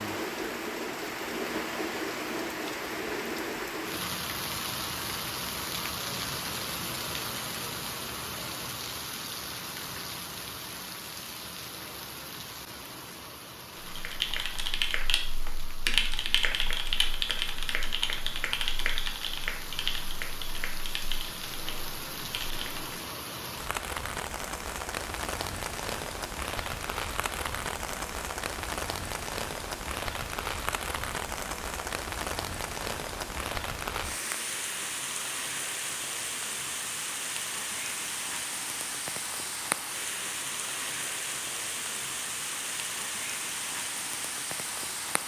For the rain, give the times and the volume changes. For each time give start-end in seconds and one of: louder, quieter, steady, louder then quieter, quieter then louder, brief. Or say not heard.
0.0-45.2 quieter then louder.